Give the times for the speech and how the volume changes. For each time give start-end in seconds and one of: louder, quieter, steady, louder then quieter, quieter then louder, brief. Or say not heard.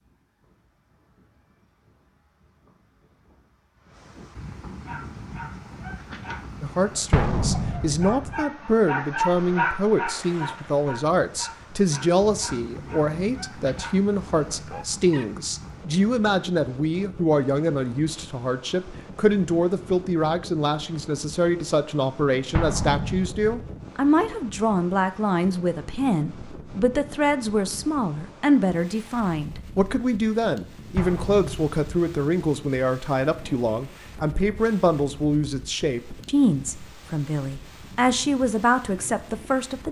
6.6-39.8 steady.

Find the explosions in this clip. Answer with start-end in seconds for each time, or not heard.
7.1-8.4, 22.6-23.6, 30.9-32.1.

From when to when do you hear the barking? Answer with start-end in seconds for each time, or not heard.
4.8-15.2.